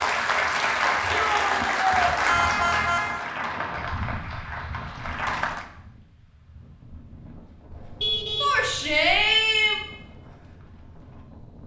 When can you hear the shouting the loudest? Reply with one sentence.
The loudest moment of the shouting is at 9 seconds.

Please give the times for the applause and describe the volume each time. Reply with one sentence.
You can hear the applause from 0.0 to 5.7 s, getting quieter.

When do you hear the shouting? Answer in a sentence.
The shouting can be heard from 1.1 to 2.1 s and from 8.4 to 9.8 s.